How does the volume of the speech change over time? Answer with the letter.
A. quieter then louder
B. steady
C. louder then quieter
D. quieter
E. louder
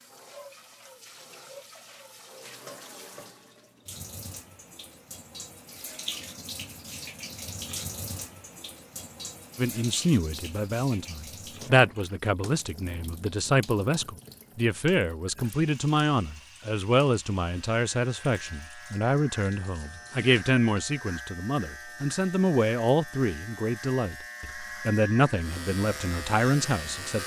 B.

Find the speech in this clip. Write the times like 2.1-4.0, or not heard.
9.6-27.2.